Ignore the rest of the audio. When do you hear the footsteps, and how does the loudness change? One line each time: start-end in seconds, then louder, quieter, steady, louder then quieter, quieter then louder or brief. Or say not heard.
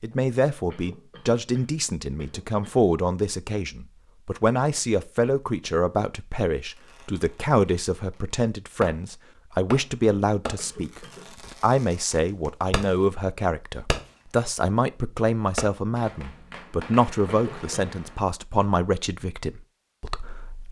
not heard.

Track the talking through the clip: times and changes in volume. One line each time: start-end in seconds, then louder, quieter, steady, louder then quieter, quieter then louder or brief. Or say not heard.
0.0-20.6 steady.